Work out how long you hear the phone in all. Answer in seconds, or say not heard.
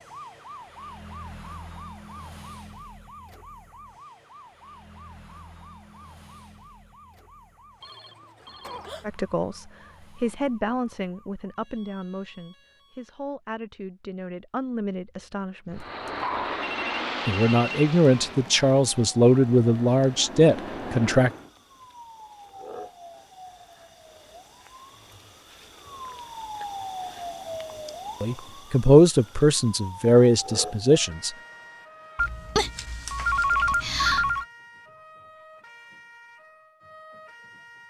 5 s.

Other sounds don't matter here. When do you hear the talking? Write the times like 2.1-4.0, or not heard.
9.1-15.8, 17.2-21.3, 28.2-31.3.